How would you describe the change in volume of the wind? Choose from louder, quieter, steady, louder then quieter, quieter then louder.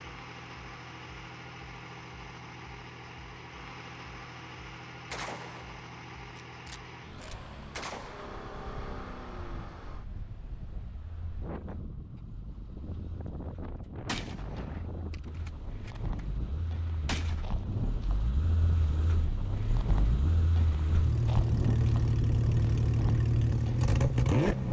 louder.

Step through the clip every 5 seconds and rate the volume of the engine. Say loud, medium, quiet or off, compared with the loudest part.
quiet, quiet, quiet, quiet, loud.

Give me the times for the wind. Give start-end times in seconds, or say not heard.
8.3-24.6.